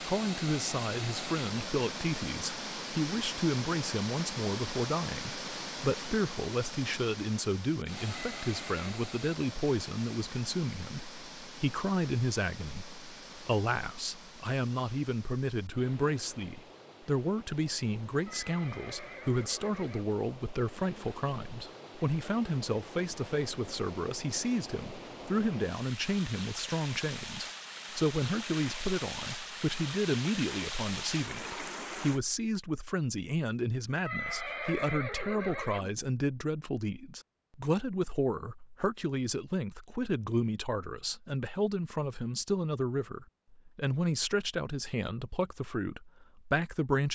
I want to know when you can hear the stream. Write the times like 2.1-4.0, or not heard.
0.0-32.2.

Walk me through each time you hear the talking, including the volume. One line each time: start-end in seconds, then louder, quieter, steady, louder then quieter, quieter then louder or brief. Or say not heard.
0.0-47.1 steady.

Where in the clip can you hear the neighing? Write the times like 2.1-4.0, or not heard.
8.2-9.0, 18.2-20.1, 34.0-35.9.